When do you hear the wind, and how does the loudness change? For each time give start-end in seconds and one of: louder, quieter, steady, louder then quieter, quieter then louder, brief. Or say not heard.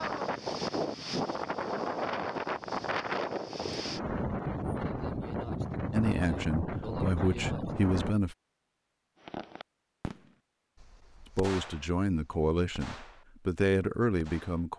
0.0-8.2 steady.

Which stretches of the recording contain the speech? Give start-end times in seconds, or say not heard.
5.9-8.3, 11.3-14.7.